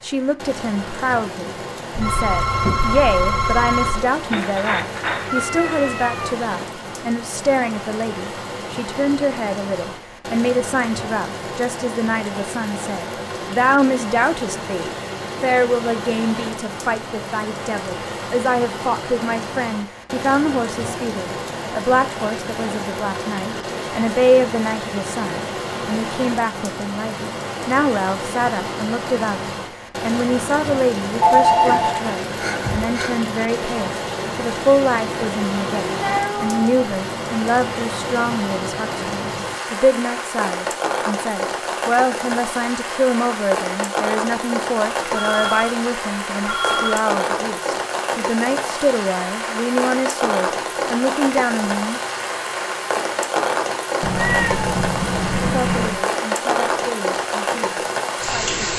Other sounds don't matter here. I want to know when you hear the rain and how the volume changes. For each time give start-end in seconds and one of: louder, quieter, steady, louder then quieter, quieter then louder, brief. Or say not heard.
0.0-58.7 louder.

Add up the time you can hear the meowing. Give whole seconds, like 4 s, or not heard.
5 s.